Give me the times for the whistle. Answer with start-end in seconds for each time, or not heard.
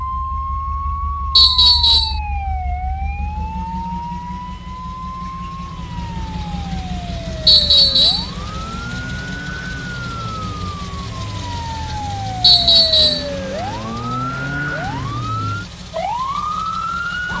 1.4-2.2, 7.5-8.3, 12.4-13.2.